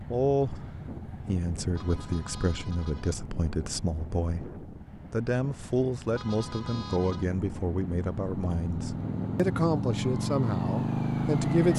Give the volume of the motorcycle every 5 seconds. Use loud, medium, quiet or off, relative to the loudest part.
quiet, medium, loud.